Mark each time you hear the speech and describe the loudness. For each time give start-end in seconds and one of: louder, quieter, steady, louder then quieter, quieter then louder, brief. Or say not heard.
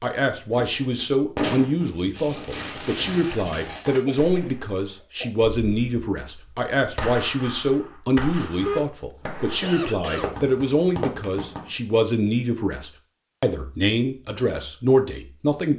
0.0-15.7 steady.